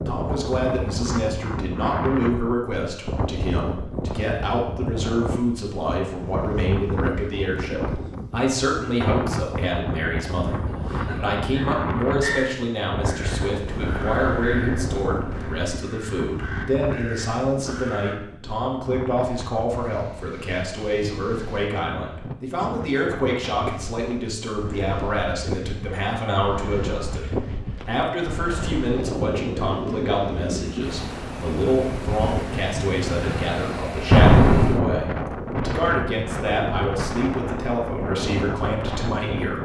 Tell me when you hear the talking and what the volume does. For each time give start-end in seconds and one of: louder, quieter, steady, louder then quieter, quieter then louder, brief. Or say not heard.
0.1-39.5 steady.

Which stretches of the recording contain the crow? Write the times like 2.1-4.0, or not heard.
10.7-18.2.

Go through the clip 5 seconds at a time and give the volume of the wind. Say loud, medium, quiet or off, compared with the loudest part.
loud, loud, loud, medium, medium, loud, loud, loud.